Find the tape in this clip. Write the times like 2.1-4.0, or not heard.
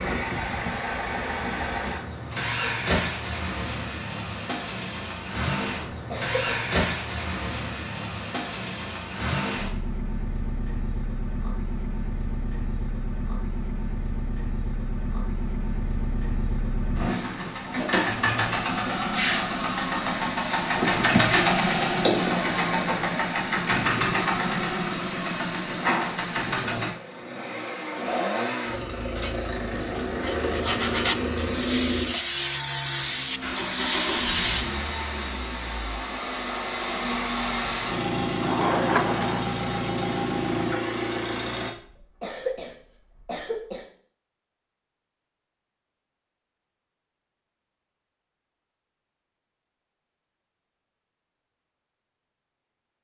not heard.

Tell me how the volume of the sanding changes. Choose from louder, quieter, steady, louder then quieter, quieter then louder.
louder.